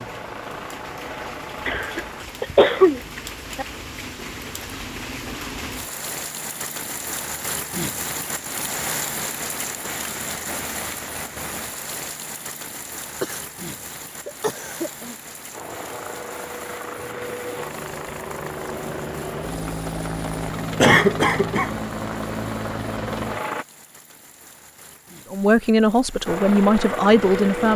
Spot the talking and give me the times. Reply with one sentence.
You can hear the talking from 25.3 to 27.7 s.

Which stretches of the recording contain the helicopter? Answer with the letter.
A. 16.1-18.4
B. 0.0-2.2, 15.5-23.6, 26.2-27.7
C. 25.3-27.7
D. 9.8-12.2
B.